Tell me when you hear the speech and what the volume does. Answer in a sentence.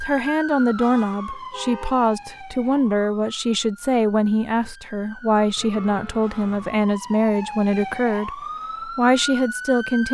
You can hear the speech from 0.0 to 10.0 s, at a steady volume.